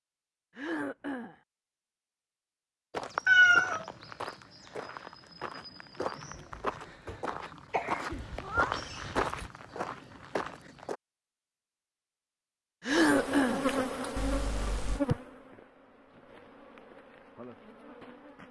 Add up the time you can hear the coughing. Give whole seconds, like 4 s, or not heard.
4 s.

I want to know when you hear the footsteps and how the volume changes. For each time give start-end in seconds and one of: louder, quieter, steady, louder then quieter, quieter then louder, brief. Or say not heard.
2.9-11.0 louder.